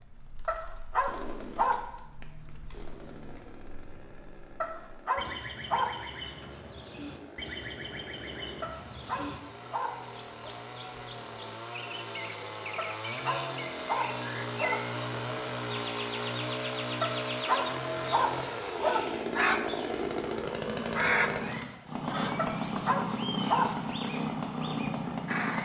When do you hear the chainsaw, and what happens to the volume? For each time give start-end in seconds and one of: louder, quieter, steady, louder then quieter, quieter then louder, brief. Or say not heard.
0.0-25.5 louder.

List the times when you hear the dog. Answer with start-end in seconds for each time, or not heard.
0.5-1.9, 4.6-6.0, 8.6-10.6, 12.8-14.8, 17.0-19.0, 22.4-23.8.